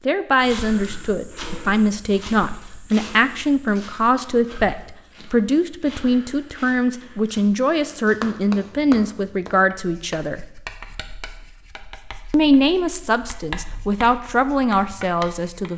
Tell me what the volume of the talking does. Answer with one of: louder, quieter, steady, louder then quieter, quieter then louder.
steady.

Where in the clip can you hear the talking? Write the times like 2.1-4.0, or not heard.
0.1-10.4, 12.3-15.7.